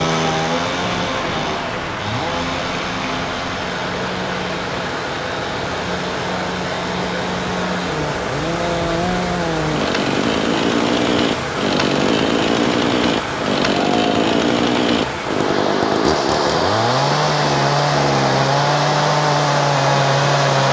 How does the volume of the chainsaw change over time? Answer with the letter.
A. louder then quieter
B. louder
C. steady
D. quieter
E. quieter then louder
B.